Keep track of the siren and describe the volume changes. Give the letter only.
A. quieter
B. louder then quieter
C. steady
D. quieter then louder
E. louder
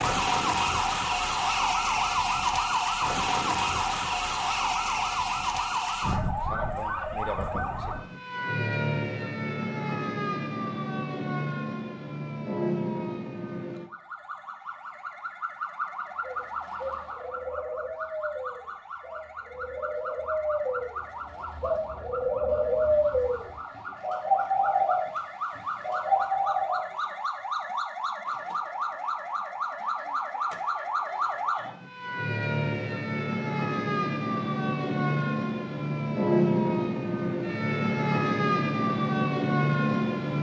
D.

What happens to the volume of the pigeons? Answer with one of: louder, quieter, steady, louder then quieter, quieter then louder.
louder.